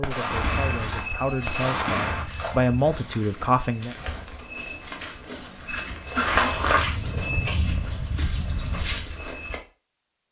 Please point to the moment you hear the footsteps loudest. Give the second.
6 s.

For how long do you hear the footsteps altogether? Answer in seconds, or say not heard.
9 s.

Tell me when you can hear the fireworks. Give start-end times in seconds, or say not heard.
0.0-2.2.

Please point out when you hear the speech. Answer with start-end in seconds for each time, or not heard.
0.0-4.0.